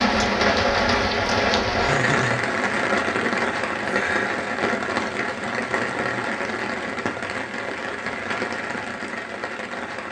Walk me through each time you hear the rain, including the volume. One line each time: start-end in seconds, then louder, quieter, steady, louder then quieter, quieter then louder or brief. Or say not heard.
0.0-10.0 quieter.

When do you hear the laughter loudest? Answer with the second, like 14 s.
2 s.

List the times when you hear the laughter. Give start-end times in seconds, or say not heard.
1.8-2.5, 5.6-6.3.